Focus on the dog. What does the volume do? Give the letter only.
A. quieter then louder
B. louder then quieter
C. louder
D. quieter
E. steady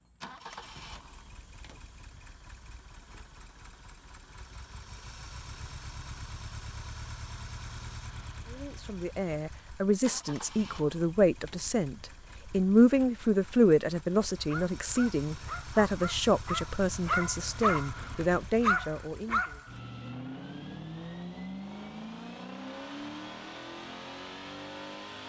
C.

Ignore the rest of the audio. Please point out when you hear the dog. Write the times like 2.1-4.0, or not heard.
14.5-19.9.